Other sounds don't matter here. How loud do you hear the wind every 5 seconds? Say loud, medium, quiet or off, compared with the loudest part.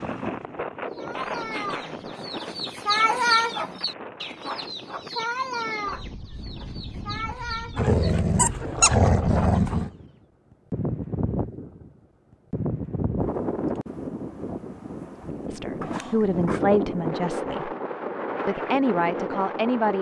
medium, medium, loud, loud.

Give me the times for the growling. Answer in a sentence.
You can hear the growling from 1.1 to 2.1 s, from 7.8 to 9.9 s and from 15.8 to 16.7 s.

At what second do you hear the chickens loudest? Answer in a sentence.
The loudest moment of the chickens is at 3 seconds.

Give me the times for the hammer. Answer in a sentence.
The hammer can't be heard in this clip.